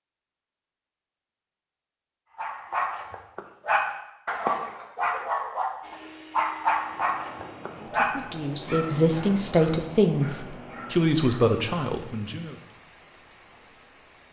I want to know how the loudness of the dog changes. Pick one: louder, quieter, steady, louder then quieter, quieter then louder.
quieter.